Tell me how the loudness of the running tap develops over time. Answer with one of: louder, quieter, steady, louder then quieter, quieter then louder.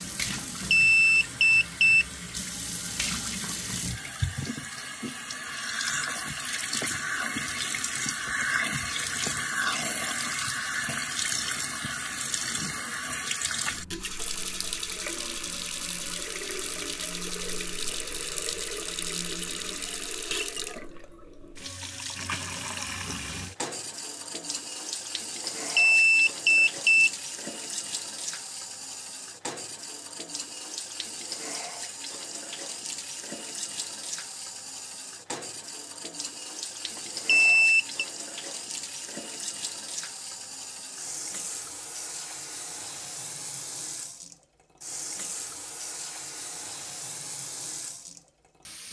quieter.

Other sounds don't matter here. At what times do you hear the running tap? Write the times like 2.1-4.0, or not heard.
0.0-48.8.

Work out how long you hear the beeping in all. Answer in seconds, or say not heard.
4 s.